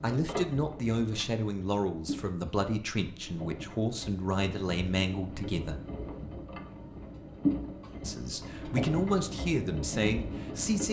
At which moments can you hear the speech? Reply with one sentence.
The speech can be heard from 0.0 to 5.8 s and from 8.1 to 10.8 s.